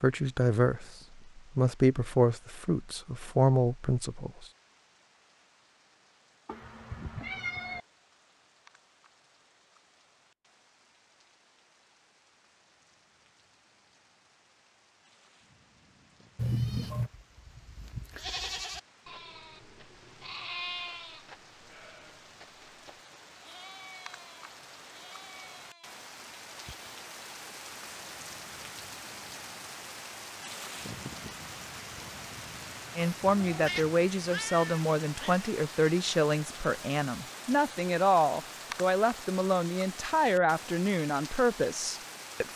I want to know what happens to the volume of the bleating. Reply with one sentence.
The loudness of the bleating goes down.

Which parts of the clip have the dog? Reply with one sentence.
The dog can't be heard in this clip.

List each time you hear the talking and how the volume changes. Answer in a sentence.
You can hear the talking from 0.0 to 4.5 s, getting quieter then louder; and from 33.0 to 42.5 s, at a steady volume.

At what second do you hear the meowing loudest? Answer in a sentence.
The volume of the meowing peaks at 17 seconds.